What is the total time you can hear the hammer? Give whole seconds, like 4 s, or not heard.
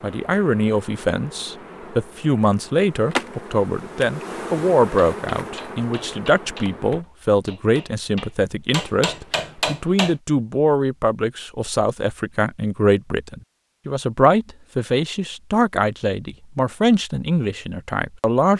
5 s.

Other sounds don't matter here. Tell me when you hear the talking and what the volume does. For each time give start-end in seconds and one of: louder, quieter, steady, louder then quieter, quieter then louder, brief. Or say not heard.
0.0-18.5 steady.